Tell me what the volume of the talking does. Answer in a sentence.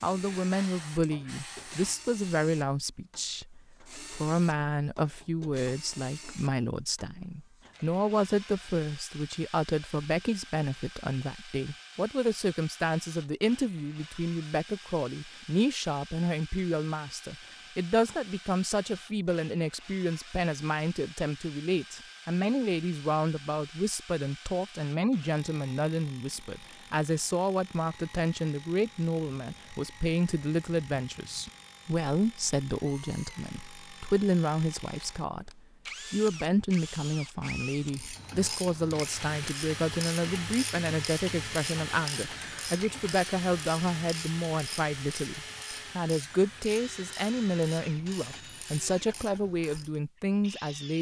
The volume of the talking stays about the same.